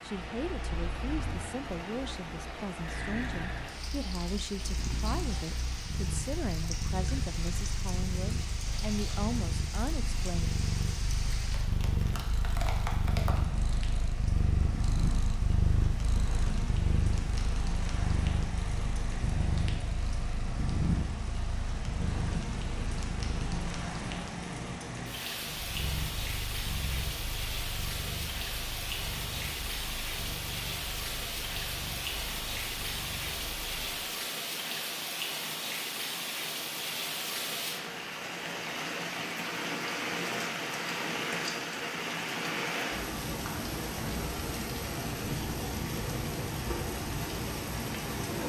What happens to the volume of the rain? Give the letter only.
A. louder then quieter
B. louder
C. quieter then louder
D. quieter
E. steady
B.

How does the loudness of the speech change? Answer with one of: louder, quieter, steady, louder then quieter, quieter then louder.
steady.